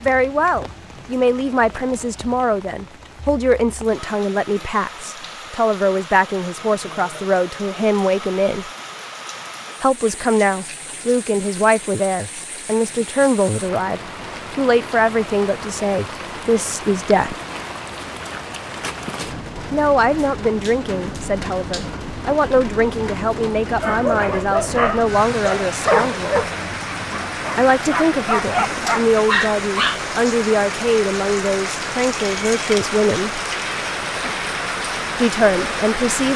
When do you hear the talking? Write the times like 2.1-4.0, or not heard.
0.0-8.7, 9.8-17.4, 19.7-26.4, 27.6-33.4, 35.1-36.3.